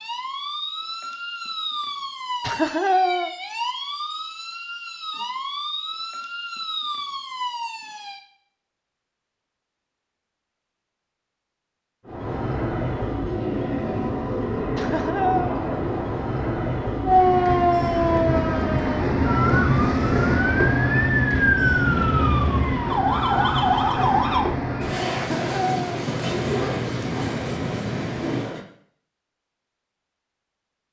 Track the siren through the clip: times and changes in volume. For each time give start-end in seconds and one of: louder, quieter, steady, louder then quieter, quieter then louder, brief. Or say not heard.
0.0-8.2 steady
17.1-24.5 quieter then louder.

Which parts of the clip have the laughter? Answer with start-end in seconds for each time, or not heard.
2.4-3.3, 14.8-15.6, 25.1-26.0.